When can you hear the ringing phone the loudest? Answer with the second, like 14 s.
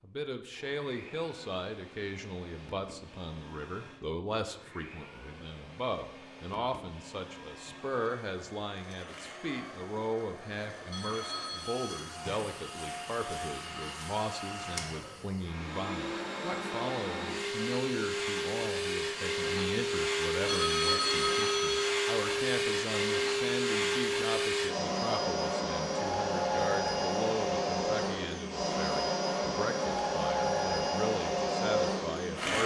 21 s.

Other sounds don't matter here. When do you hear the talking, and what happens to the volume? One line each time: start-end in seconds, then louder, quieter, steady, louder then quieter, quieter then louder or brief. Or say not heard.
0.0-32.6 steady.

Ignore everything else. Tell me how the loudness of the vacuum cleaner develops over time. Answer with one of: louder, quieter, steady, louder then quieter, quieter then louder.
louder.